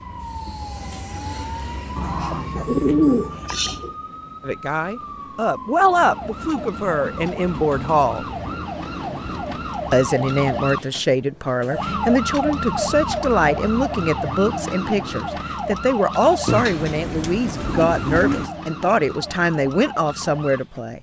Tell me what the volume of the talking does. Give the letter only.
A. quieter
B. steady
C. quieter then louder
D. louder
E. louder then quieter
B.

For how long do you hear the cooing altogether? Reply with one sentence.
You can hear the cooing for 4 seconds altogether.